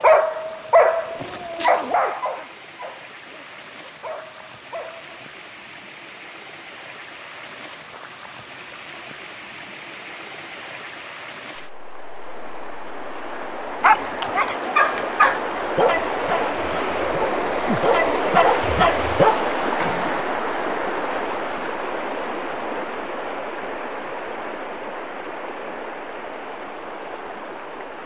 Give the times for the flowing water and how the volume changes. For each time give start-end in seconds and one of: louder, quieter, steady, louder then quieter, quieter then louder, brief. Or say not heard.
0.0-28.0 louder then quieter.